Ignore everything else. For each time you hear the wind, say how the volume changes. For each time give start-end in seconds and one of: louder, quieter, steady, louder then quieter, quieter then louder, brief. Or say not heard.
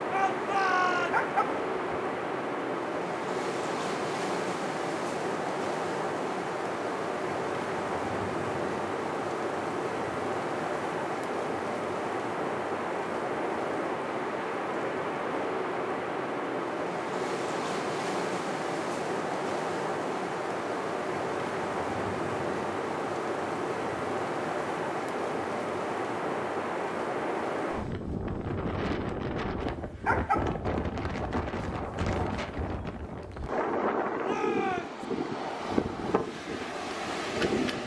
0.0-37.8 steady.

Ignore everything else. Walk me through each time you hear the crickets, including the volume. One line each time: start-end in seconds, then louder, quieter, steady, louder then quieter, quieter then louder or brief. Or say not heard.
not heard.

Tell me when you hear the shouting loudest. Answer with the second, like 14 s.
1 s.